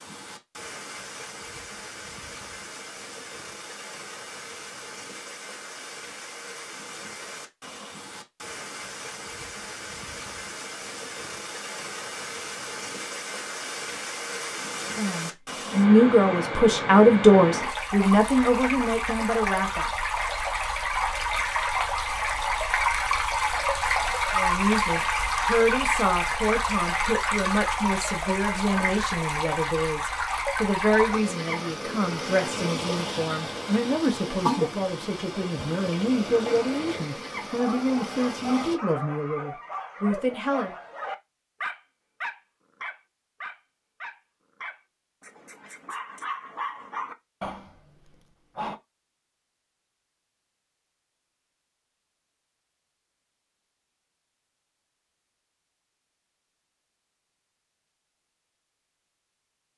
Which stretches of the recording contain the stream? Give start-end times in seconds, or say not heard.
0.0-38.8.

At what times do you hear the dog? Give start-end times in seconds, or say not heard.
37.5-48.8.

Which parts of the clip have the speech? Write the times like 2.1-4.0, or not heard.
14.8-19.9, 24.4-40.8.